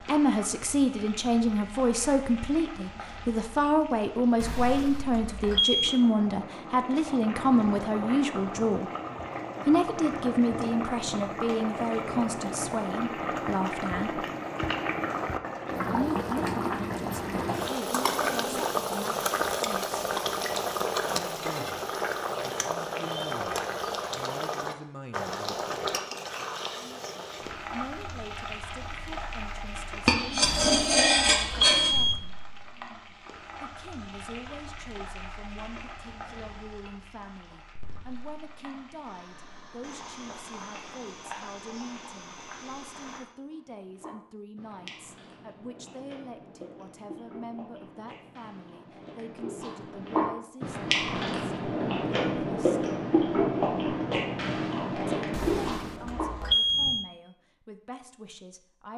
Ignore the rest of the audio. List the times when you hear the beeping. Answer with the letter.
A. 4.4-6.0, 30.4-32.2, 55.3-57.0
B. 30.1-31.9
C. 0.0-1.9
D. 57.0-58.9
A.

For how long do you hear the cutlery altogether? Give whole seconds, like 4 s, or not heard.
2 s.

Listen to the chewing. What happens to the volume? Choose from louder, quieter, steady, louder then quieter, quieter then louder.
louder.